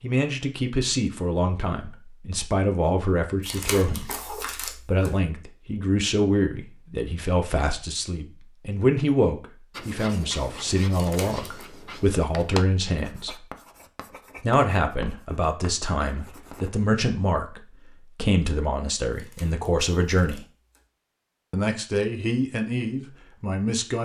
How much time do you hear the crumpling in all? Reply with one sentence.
You can hear the crumpling for 4 seconds altogether.